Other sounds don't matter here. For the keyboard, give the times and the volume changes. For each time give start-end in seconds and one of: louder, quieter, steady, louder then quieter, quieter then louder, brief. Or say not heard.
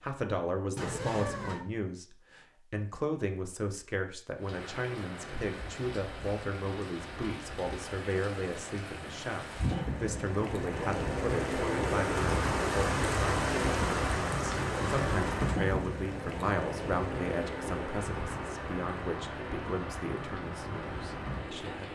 not heard.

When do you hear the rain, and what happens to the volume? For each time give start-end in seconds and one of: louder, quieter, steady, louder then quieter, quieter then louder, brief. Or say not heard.
4.3-21.9 louder then quieter.